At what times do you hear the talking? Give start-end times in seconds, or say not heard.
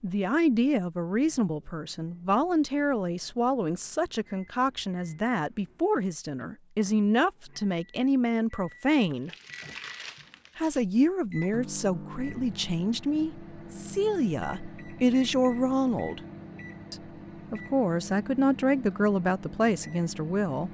0.0-9.3, 10.6-16.2, 16.9-20.6.